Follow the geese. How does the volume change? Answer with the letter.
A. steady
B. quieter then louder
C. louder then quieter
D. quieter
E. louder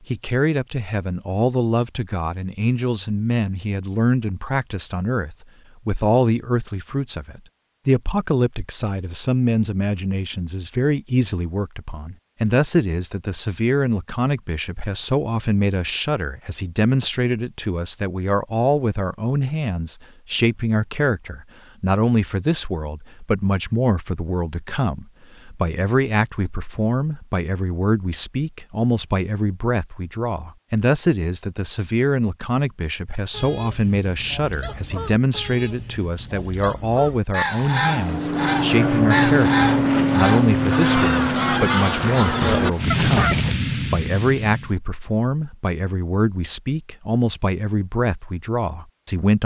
E.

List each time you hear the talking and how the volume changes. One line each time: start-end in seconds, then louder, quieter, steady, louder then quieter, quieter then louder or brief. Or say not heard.
0.1-49.4 steady.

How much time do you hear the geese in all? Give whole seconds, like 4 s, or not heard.
10 s.